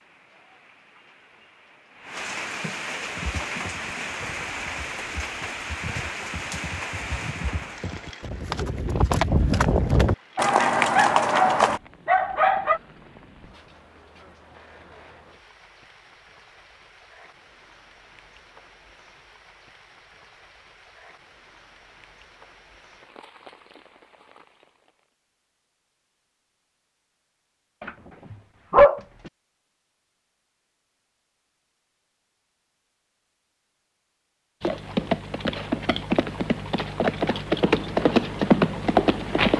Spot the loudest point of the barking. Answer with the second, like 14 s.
29 s.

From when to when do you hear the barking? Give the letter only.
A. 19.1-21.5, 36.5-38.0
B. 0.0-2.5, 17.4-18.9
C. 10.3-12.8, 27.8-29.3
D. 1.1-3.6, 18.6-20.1
C.